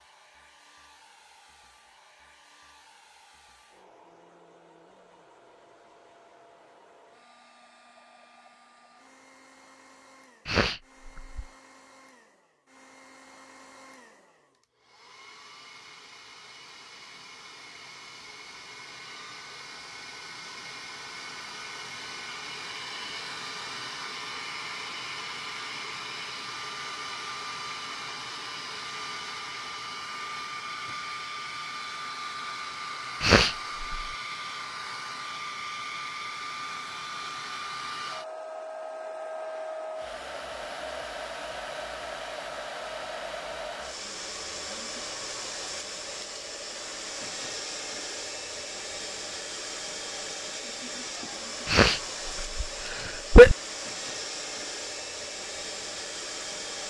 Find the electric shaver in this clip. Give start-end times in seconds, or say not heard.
not heard.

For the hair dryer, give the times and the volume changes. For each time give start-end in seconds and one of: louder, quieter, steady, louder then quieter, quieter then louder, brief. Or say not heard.
0.0-56.8 louder.